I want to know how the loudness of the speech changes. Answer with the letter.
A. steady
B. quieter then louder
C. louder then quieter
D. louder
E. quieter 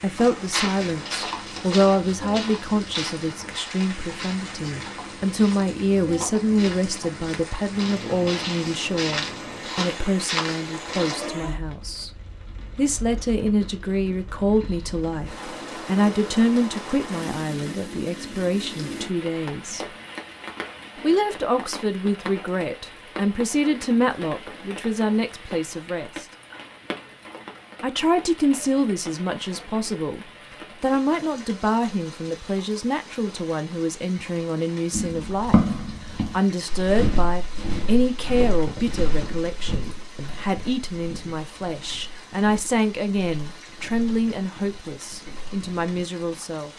A.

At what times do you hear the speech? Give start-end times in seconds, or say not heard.
0.0-12.1, 12.8-19.9, 21.0-26.2, 27.8-35.6, 36.3-46.7.